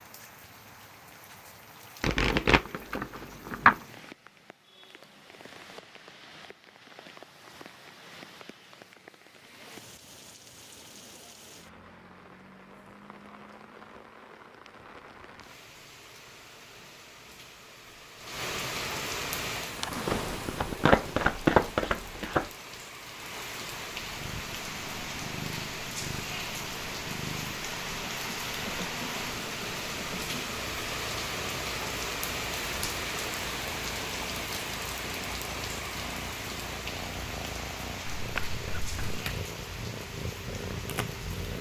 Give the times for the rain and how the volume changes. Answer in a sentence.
You can hear the rain from 0.0 to 41.5 s, getting louder.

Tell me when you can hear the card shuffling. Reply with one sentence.
The card shuffling can be heard from 2.0 to 3.8 s, from 20.1 to 22.5 s and from 38.0 to 39.2 s.